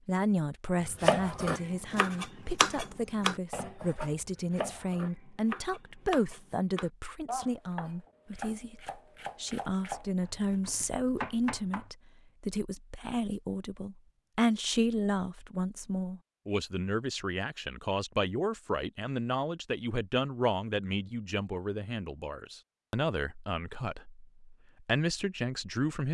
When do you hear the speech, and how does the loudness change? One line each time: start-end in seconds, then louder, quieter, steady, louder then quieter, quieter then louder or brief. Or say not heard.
0.1-26.0 steady.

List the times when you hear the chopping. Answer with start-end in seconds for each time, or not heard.
0.8-11.9.